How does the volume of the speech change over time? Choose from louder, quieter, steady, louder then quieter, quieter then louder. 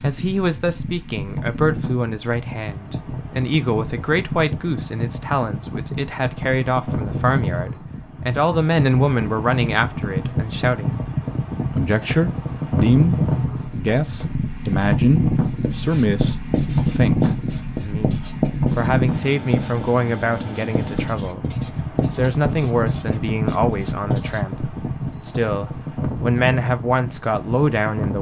steady.